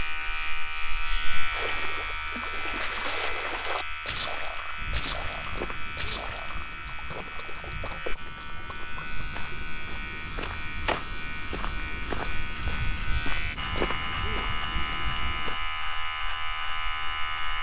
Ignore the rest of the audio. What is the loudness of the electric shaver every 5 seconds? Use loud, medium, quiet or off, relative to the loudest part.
loud, medium, loud, loud.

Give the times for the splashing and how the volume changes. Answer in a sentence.
You can hear the splashing from 1.5 to 9.2 s, getting quieter.